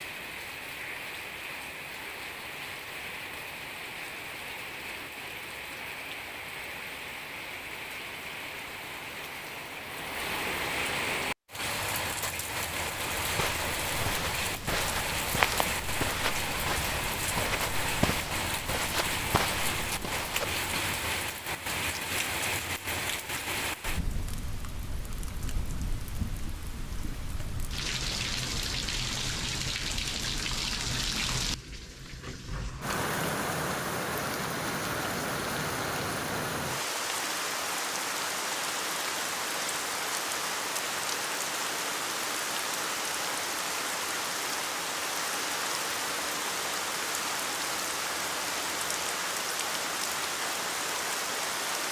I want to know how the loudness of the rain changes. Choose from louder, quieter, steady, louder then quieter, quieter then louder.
louder.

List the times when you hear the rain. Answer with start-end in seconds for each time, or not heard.
0.0-51.8.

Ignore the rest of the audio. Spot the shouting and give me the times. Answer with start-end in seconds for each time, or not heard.
not heard.